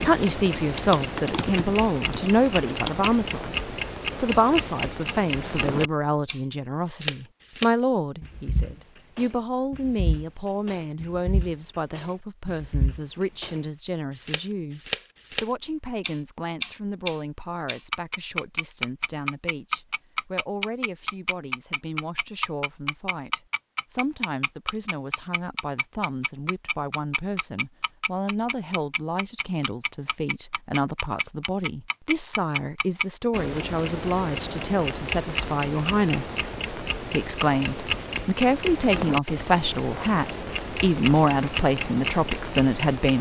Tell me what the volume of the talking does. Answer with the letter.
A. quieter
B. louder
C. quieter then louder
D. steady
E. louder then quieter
C.